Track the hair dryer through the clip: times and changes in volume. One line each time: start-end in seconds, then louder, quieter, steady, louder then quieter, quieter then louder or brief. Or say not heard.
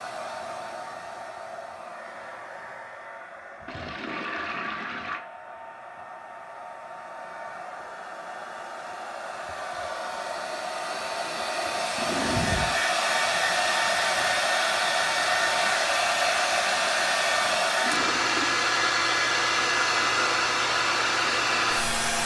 0.0-22.2 louder.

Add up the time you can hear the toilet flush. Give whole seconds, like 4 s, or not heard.
3 s.